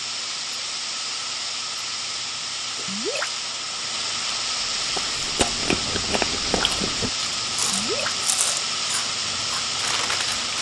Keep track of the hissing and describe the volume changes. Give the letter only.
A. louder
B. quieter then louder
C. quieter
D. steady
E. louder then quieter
D.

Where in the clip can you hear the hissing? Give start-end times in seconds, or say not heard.
0.0-10.5.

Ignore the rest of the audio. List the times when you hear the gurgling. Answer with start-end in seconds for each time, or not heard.
2.8-3.3, 7.6-8.2.